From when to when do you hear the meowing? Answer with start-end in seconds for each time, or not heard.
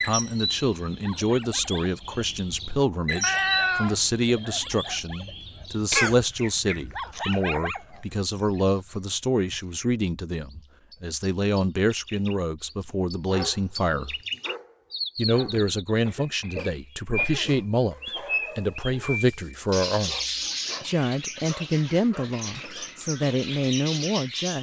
3.2-4.0.